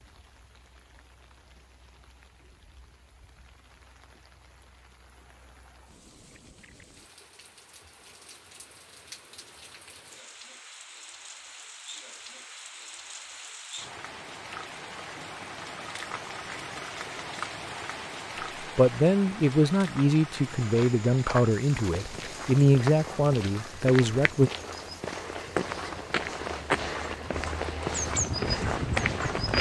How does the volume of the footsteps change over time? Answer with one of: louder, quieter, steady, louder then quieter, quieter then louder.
louder.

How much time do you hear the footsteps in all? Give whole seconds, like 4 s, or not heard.
9 s.